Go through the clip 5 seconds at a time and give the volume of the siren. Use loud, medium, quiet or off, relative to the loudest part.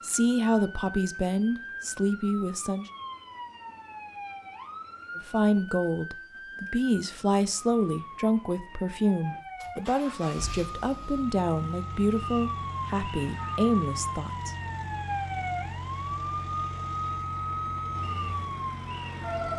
medium, medium, loud, loud.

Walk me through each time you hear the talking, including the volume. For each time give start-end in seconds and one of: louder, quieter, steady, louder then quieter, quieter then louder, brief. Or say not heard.
0.0-2.9 brief
5.2-14.6 steady.